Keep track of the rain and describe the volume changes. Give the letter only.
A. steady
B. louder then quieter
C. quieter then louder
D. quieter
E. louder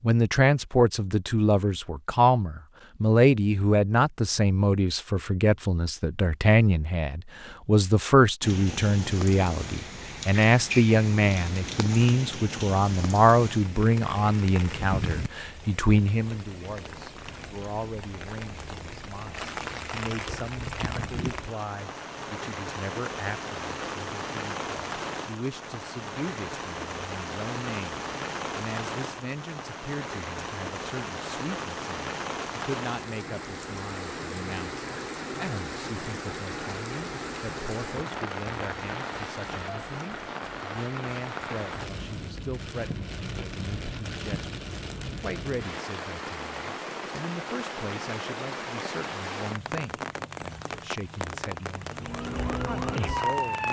A.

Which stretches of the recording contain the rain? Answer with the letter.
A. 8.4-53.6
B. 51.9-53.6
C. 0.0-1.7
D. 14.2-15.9
A.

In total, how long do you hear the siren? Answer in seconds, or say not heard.
2 s.